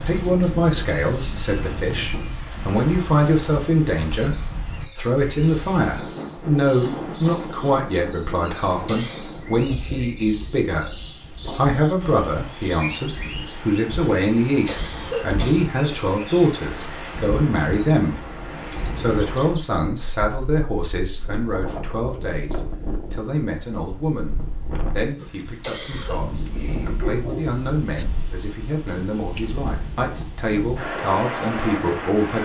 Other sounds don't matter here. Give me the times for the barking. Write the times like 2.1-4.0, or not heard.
26.4-28.1.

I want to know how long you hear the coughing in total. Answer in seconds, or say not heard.
3 s.